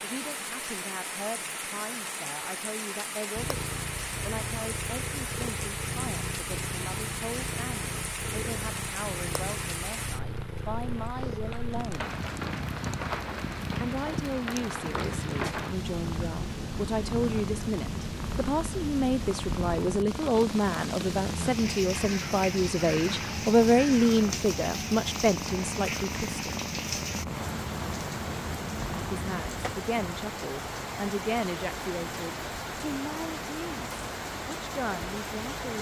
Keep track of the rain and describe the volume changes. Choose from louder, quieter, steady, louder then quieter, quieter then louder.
steady.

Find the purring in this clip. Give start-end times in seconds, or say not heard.
3.4-29.4.